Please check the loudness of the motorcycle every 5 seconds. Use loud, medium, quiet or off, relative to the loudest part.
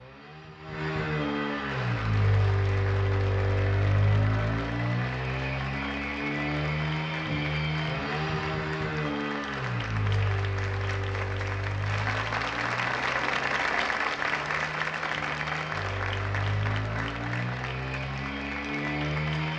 loud, loud, medium, loud.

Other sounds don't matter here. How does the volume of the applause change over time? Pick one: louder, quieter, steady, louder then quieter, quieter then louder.
louder then quieter.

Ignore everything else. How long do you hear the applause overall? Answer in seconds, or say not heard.
18 s.